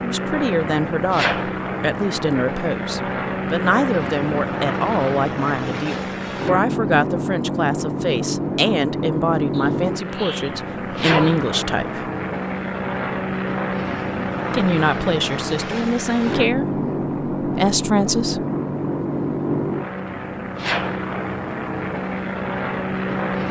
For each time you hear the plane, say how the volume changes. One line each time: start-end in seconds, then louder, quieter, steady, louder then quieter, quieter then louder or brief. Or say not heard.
0.0-23.4 steady.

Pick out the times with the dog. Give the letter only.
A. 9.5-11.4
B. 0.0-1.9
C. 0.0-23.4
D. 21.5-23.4
A.